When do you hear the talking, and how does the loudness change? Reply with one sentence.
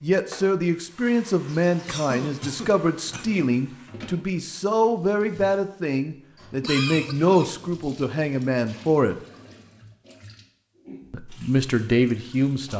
The talking can be heard from 0.0 to 9.2 s, at a steady volume; and briefly from 11.1 to 12.7 s.